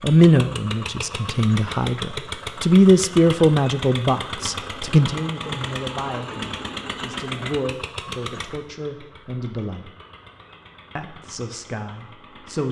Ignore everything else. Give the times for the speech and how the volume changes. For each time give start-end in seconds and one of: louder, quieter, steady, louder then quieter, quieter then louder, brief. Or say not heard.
0.0-9.9 louder then quieter
10.9-12.6 brief.